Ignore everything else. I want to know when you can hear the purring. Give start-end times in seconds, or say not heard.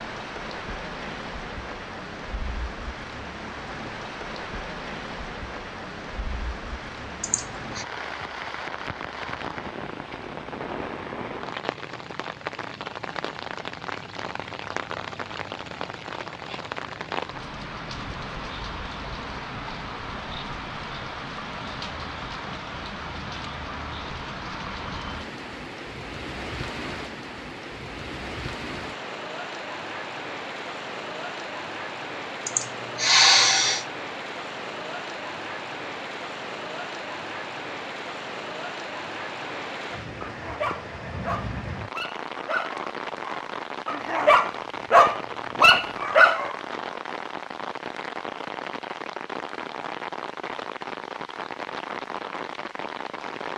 not heard.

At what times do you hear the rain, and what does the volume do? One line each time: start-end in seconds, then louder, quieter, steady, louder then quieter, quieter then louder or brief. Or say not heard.
0.0-53.5 steady.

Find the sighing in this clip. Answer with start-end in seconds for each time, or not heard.
7.2-7.8, 32.5-33.9.